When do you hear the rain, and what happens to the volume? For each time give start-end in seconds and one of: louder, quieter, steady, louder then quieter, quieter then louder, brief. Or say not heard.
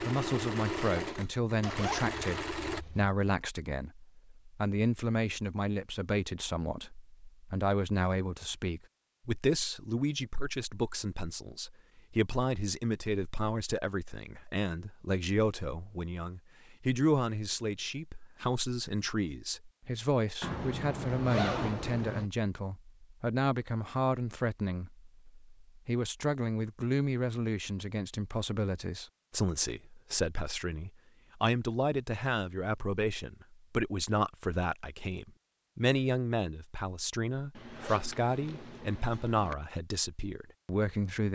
not heard.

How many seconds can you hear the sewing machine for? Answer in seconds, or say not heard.
3 s.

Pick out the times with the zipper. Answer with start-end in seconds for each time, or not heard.
1.6-3.1, 20.4-22.2, 37.5-39.5.